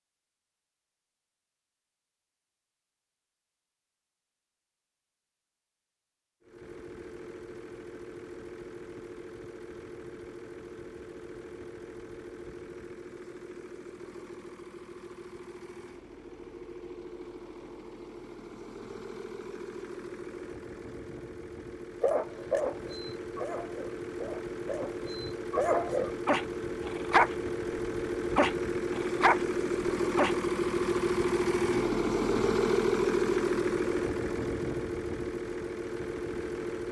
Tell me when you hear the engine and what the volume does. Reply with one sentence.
You can hear the engine from 6.4 to 36.8 s, getting louder.